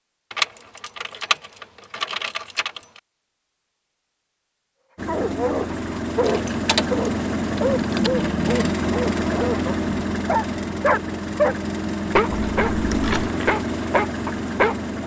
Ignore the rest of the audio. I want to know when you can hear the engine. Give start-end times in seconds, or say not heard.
5.0-15.0.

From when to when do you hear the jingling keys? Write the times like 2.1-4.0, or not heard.
0.3-3.0, 6.2-8.1, 12.3-13.3.